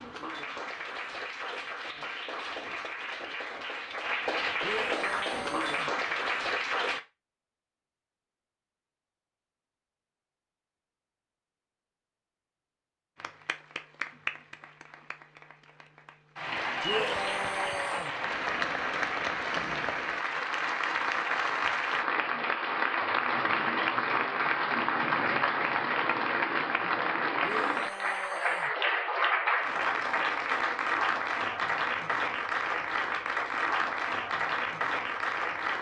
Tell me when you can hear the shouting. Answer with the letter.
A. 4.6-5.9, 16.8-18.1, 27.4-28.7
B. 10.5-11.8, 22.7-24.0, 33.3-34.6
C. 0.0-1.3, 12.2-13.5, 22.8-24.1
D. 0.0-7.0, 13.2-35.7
A.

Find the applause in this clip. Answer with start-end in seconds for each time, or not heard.
0.0-7.0, 13.2-35.7.